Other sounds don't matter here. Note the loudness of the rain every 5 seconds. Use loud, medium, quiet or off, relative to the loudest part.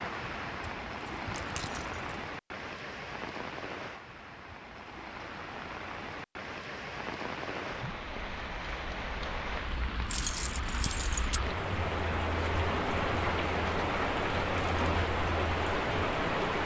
medium, medium, loud, loud.